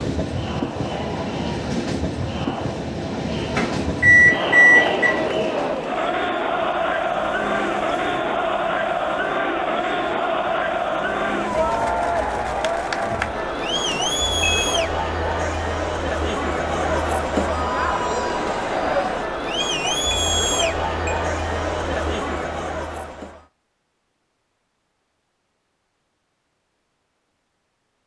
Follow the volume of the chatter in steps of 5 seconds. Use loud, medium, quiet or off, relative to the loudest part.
medium, loud, loud, loud, loud, off.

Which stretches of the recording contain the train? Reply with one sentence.
The train can be heard from 0.0 to 11.9 s.